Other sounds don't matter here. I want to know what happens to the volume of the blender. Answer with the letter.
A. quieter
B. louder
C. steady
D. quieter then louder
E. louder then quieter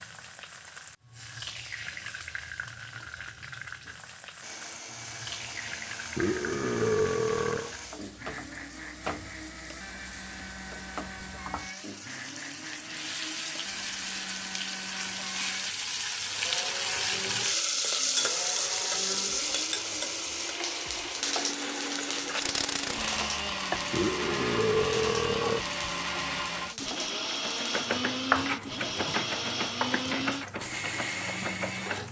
B.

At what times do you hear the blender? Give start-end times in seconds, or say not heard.
4.4-32.0.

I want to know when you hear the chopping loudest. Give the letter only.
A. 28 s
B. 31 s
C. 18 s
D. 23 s
A.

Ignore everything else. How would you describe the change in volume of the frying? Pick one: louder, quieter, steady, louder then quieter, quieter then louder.
louder then quieter.